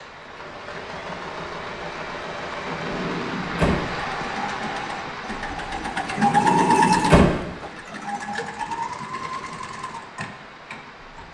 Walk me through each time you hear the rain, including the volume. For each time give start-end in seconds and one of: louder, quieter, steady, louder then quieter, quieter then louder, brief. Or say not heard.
0.0-11.3 louder then quieter.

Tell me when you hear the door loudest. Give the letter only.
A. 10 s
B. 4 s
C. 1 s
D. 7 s
D.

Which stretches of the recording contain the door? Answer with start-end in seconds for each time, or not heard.
2.6-3.9, 6.2-7.3.